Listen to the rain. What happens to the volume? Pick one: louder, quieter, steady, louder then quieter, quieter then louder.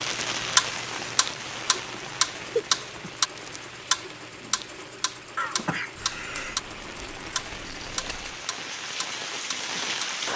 quieter then louder.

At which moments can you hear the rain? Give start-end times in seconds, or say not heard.
0.0-10.3.